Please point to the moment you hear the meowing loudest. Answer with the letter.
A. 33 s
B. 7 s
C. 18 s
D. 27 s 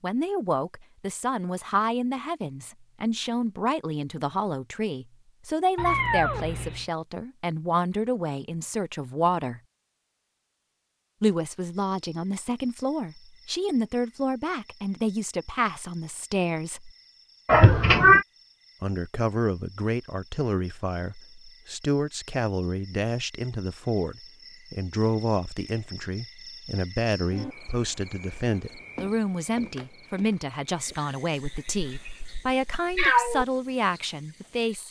C.